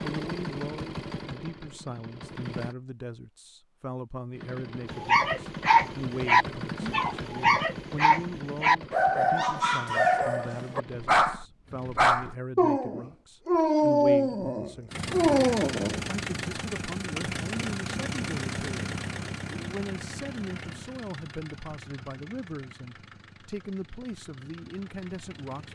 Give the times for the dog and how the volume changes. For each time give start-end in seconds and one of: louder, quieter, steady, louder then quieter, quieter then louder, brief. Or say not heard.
5.0-16.1 steady.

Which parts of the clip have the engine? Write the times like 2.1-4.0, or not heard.
0.0-2.8, 4.3-12.2, 14.9-25.7.